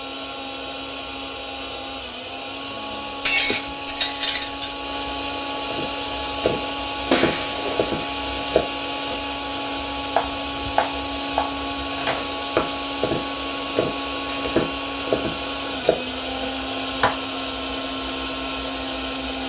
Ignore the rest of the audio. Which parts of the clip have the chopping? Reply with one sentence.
You can hear the chopping from 5.7 to 17.1 s.